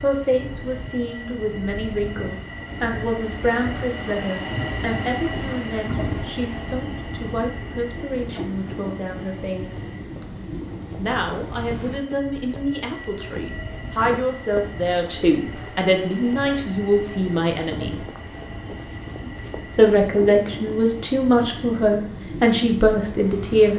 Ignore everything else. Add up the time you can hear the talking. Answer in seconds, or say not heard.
21 s.